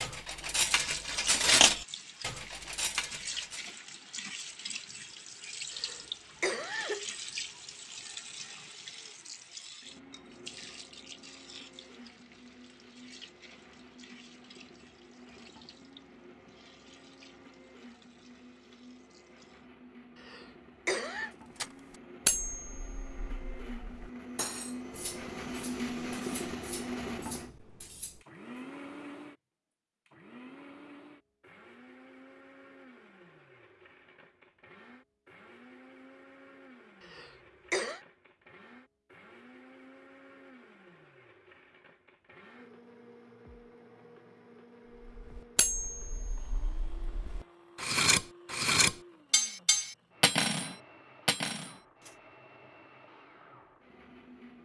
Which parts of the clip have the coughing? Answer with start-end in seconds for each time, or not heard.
5.7-7.0, 20.1-21.3, 37.0-38.0.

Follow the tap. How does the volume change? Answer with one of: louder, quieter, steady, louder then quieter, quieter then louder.
quieter.